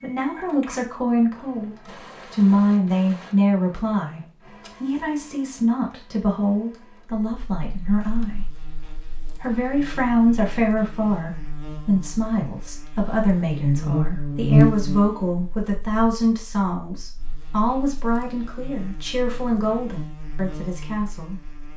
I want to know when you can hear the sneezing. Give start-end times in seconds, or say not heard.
not heard.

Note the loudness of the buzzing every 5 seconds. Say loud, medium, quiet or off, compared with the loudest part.
off, quiet, loud, quiet, quiet.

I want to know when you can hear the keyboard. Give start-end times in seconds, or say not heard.
not heard.